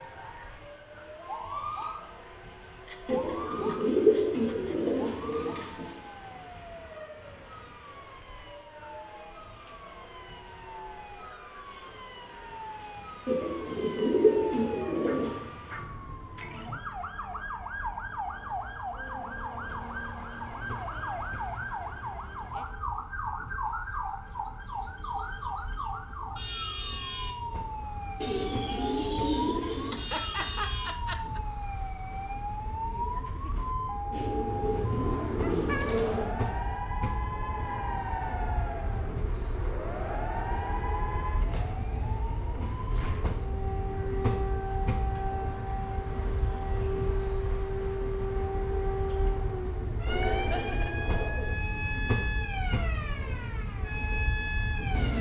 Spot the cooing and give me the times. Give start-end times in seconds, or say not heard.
3.0-5.9, 13.2-15.4, 28.2-30.0, 34.1-36.3, 50.0-51.6.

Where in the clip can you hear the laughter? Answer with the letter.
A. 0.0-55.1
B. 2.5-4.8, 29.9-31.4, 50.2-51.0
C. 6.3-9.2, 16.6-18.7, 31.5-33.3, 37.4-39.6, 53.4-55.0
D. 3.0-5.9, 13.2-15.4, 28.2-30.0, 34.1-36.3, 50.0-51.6
B.